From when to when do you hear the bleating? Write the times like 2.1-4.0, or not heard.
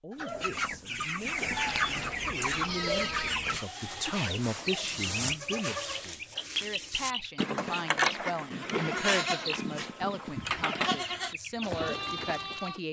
1.3-12.8.